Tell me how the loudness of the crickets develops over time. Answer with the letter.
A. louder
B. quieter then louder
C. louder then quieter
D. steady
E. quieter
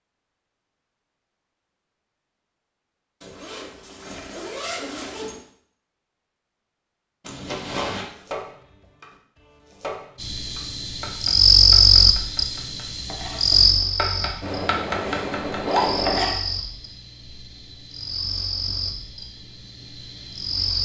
E.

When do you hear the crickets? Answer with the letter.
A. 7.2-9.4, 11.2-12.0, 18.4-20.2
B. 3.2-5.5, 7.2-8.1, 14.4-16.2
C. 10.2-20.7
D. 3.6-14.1
C.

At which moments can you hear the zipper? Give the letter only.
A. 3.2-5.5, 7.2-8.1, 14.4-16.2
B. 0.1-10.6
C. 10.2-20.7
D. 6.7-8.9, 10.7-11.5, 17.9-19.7
A.